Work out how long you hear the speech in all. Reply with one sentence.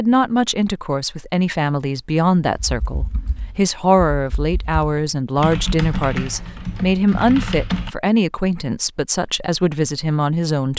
You can hear the speech for 11 seconds altogether.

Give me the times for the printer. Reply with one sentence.
You can't hear the printer here.